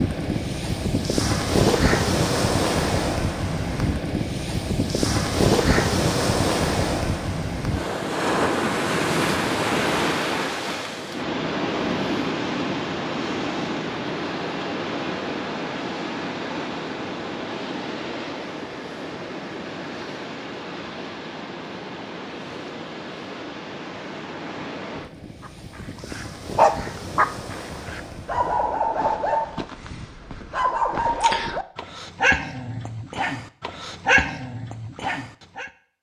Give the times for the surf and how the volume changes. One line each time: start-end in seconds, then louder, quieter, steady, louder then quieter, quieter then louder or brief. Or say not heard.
0.0-28.8 quieter.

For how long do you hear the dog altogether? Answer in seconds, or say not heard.
10 s.